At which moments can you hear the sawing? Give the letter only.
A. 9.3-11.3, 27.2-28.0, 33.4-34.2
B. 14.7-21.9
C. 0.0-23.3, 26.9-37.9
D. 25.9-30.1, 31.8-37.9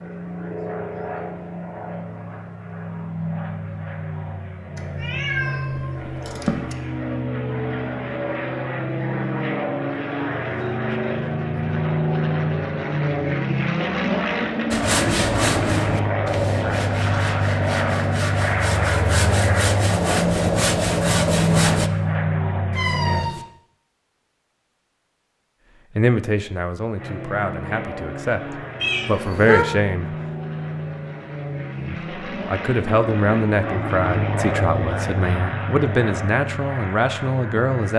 B.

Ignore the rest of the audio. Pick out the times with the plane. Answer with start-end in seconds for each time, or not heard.
0.0-23.3, 26.9-37.9.